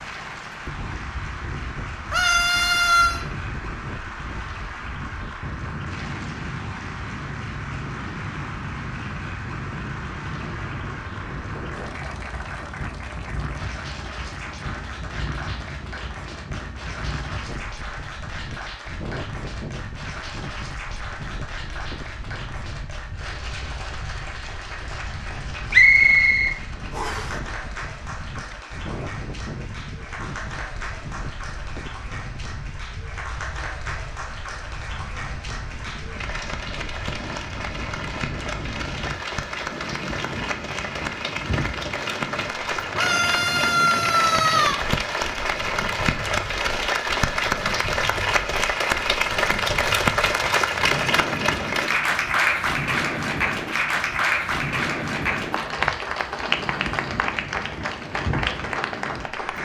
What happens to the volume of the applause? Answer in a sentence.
The loudness of the applause goes up.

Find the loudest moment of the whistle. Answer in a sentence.
The loudest moment of the whistle is at 26 seconds.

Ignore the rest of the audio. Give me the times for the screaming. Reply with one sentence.
You can hear the screaming from 2.1 to 3.2 s and from 43.0 to 44.8 s.